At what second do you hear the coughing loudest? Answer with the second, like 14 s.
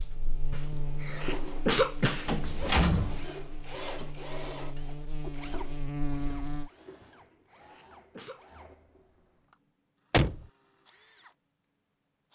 2 s.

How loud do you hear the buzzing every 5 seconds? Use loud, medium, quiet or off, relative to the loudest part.
medium, loud, off.